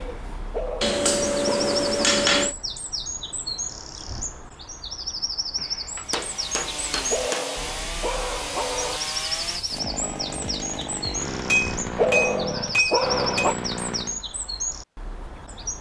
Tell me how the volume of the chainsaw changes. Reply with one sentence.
The loudness of the chainsaw stays about the same.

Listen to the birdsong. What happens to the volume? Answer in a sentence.
The volume of the birdsong stays about the same.